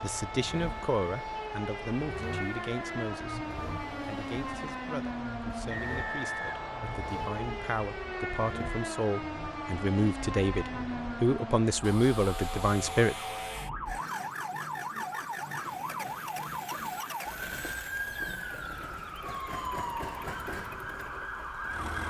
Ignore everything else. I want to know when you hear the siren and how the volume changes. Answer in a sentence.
You can hear the siren from 0.0 to 22.0 s, at a steady volume.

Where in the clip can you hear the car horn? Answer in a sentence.
The car horn can't be heard in this clip.